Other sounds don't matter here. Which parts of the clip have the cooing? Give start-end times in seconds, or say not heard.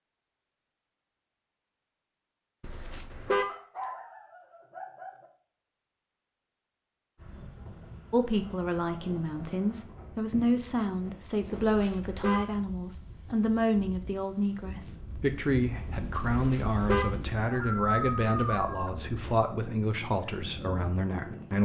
not heard.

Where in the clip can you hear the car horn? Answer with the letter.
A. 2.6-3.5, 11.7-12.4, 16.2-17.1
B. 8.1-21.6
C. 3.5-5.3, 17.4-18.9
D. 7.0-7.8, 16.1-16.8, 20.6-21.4
A.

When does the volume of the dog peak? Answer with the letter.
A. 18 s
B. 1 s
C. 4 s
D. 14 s
A.